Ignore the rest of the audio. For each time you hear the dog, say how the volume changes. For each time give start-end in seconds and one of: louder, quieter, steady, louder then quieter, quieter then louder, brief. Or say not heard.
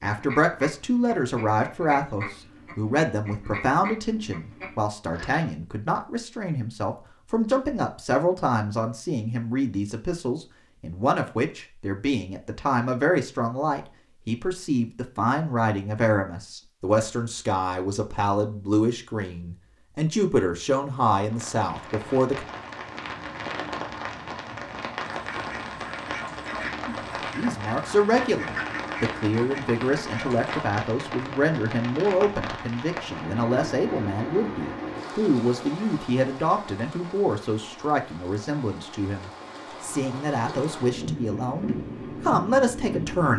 not heard.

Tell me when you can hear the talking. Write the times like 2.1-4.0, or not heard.
0.0-22.4, 26.9-43.3.